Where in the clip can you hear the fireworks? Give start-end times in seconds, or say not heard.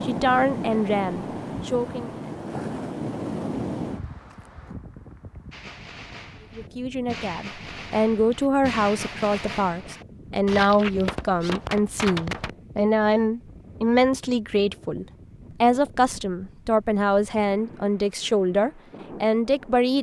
5.5-12.6.